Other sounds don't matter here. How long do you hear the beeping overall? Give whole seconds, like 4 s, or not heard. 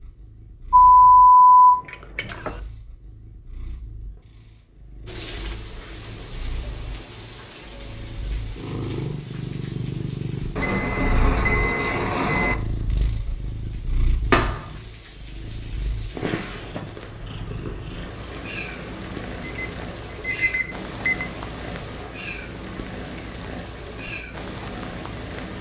6 s.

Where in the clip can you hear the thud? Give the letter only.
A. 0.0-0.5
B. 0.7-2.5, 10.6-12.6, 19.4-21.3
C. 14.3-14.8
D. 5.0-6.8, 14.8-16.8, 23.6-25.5
C.